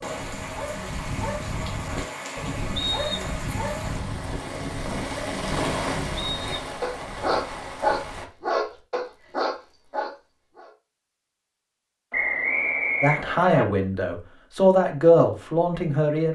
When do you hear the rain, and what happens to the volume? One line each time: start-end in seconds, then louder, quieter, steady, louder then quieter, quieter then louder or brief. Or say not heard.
0.0-8.3 louder then quieter.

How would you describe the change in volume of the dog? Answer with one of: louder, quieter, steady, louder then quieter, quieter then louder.
louder.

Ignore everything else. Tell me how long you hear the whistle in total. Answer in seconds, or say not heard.
3 s.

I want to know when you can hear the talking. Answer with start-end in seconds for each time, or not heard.
13.0-16.3.